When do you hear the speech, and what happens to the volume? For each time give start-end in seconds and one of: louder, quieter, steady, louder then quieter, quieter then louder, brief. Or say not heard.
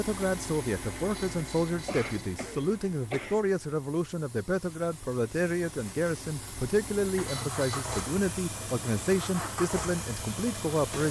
0.0-11.0 steady.